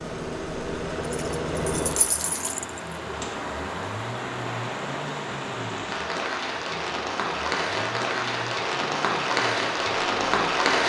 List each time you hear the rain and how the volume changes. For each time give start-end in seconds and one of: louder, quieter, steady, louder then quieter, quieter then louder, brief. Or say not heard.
0.0-10.8 louder.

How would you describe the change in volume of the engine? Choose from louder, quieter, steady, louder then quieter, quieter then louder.
quieter.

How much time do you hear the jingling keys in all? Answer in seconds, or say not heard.
2 s.